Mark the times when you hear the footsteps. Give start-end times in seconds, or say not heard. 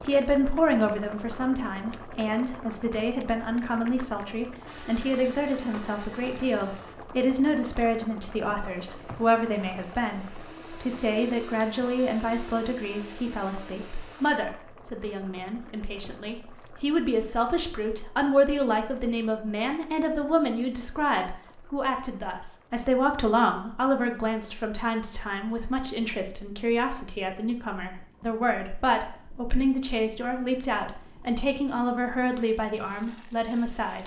not heard.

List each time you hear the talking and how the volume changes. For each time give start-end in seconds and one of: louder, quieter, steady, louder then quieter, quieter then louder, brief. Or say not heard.
0.0-34.0 steady.